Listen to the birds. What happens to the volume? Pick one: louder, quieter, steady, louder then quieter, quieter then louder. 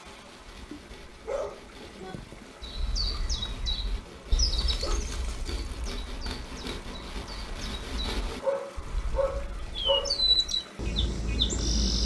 quieter then louder.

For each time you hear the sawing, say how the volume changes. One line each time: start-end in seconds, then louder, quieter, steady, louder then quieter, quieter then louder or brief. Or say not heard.
0.1-8.4 louder.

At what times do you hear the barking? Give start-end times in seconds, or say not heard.
1.1-2.1, 4.0-5.1, 8.4-10.2.